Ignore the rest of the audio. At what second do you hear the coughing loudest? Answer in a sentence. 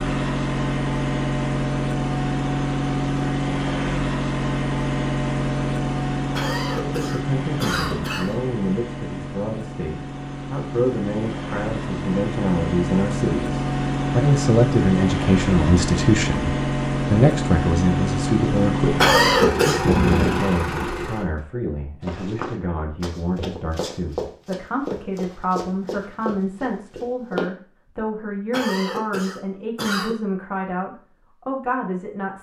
The volume of the coughing peaks at 19 seconds.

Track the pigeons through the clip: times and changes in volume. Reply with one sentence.
You can't hear the pigeons here.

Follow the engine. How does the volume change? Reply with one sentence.
The loudness of the engine goes down, then up.